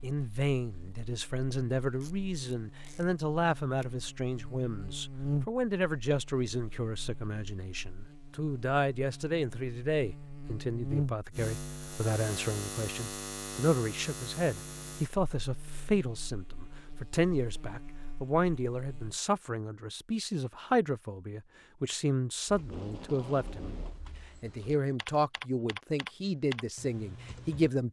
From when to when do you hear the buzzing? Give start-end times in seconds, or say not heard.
0.0-19.2.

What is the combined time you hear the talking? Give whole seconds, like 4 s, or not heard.
27 s.